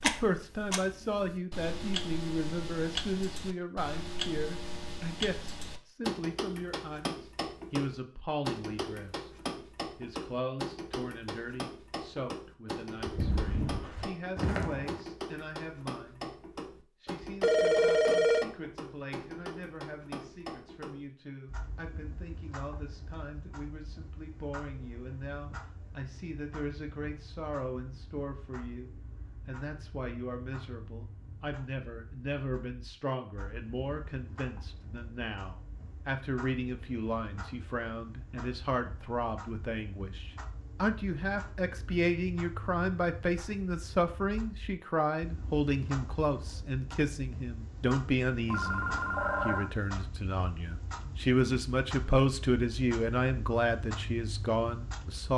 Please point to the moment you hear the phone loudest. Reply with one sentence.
The loudest moment of the phone is at 18 seconds.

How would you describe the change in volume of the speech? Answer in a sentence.
The loudness of the speech goes down, then up.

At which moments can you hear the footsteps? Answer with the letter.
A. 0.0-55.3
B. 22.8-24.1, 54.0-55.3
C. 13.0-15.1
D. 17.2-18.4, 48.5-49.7
C.